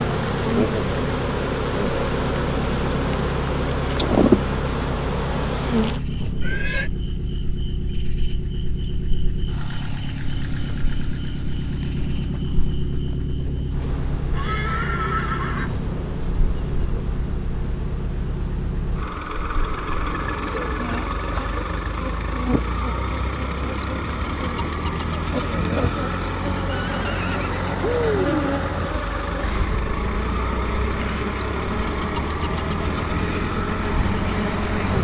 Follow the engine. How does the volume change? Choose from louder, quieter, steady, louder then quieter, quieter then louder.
steady.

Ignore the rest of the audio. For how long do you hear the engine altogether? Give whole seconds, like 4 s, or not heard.
35 s.